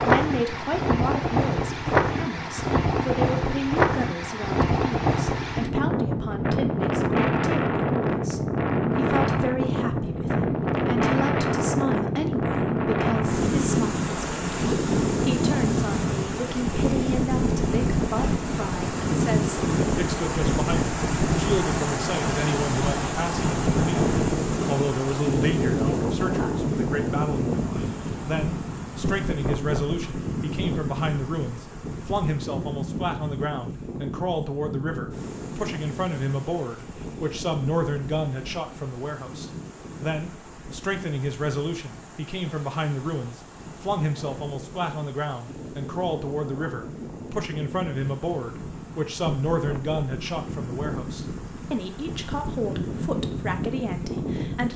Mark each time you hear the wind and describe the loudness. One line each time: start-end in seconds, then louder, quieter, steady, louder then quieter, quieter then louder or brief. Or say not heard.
0.0-54.7 quieter.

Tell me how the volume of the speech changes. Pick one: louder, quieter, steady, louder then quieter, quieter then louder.
steady.